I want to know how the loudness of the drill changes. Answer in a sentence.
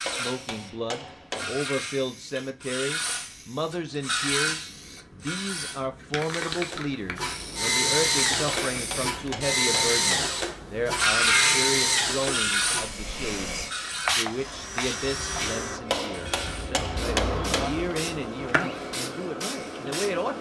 The loudness of the drill goes down.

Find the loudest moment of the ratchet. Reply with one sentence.
The volume of the ratchet peaks at 11 seconds.